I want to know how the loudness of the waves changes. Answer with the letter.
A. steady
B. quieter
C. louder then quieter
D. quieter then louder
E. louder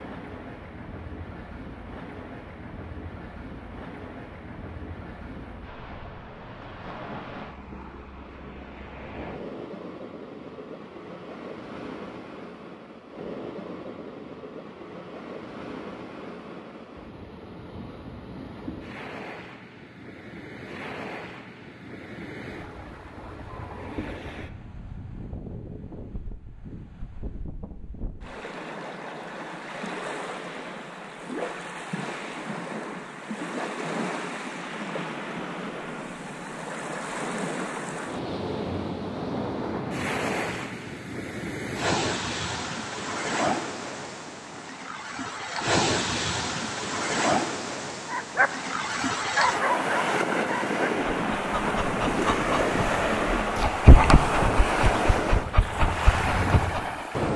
E.